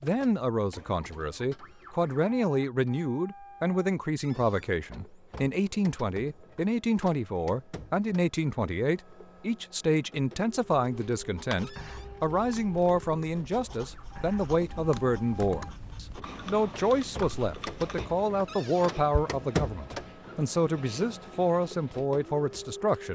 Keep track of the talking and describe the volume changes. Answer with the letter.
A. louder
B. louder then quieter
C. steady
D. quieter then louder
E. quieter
C.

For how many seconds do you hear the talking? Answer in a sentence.
The talking can be heard for 23 seconds in total.